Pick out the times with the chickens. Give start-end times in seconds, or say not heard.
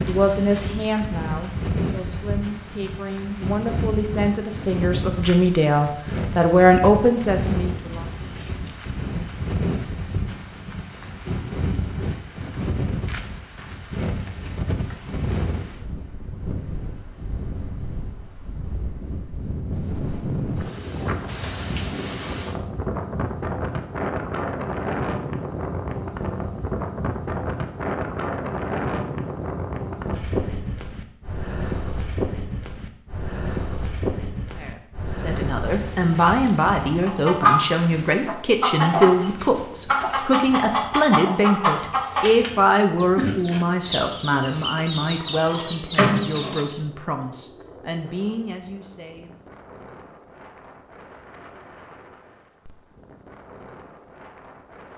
36.9-46.8.